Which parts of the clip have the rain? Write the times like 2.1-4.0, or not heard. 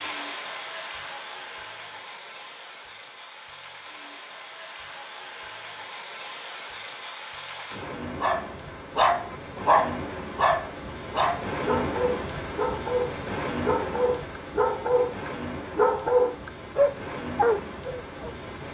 0.0-18.7.